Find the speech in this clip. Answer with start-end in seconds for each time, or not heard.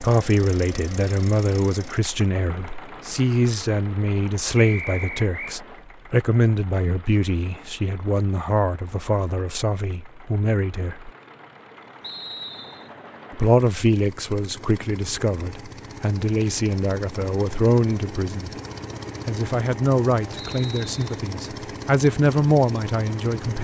0.0-11.1, 13.3-18.5, 19.2-23.5.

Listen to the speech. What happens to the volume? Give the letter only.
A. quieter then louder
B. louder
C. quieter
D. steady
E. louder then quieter
D.